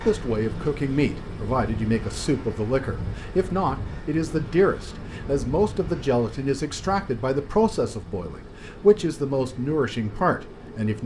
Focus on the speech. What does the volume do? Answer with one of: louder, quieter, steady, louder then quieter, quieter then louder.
steady.